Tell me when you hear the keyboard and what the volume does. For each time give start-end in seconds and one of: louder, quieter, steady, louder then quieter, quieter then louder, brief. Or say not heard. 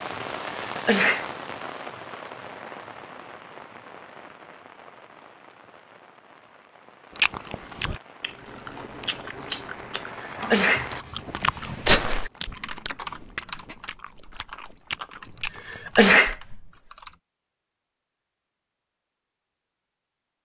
11.2-17.1 quieter.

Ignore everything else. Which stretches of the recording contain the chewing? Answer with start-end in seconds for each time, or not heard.
7.2-16.1.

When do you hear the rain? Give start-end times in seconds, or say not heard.
0.0-12.3.